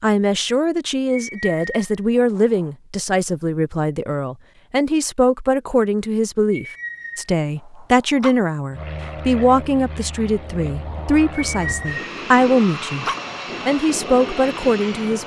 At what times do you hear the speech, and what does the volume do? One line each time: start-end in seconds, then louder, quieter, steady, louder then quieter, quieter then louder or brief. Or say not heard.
0.0-13.1 steady
13.7-15.2 brief.